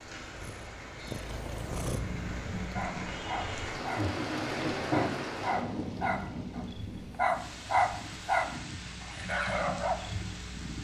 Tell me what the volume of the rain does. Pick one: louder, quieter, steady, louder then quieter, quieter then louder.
louder then quieter.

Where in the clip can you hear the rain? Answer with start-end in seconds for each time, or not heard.
0.0-10.7.